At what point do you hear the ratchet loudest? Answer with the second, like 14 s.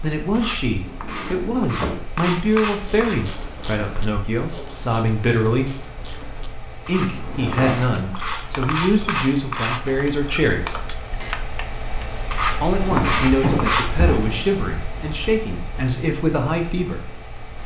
10 s.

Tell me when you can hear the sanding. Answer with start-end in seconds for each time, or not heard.
0.3-3.2, 6.8-9.8, 12.3-13.9.